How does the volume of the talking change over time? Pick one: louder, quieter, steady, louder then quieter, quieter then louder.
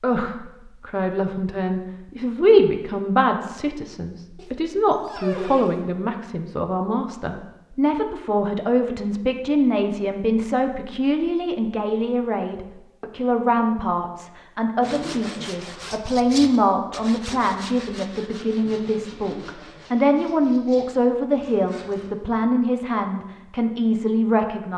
steady.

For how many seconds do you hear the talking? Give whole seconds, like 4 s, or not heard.
25 s.